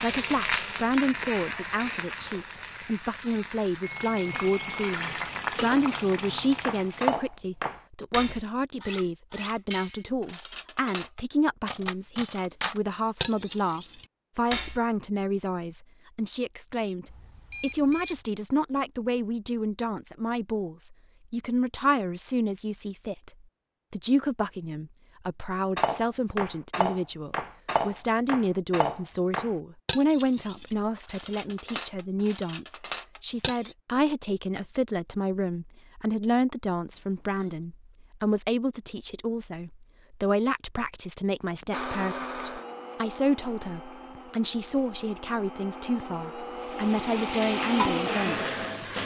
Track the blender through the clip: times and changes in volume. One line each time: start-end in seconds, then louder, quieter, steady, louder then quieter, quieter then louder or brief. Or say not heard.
41.6-49.0 quieter then louder.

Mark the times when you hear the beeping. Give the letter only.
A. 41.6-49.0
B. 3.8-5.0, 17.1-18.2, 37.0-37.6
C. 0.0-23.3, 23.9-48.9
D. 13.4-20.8
B.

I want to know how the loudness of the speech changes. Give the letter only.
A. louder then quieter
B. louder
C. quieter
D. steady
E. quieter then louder
D.